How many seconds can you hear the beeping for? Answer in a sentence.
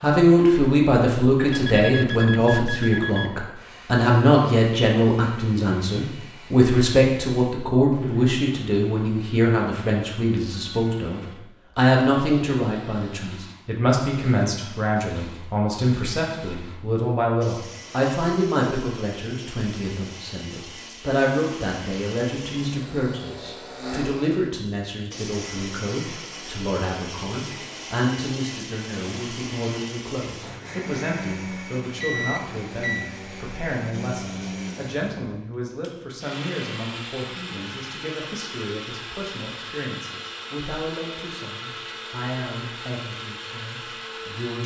The beeping can be heard for 3 seconds in total.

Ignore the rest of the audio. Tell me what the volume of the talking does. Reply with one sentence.
The volume of the talking goes down.